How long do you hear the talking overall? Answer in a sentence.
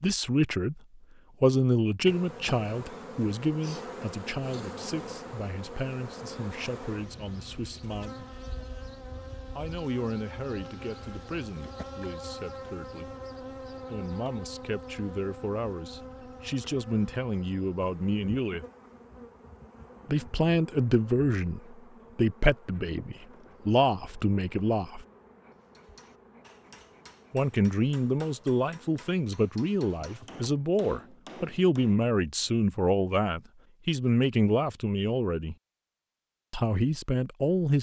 You can hear the talking for 31 seconds altogether.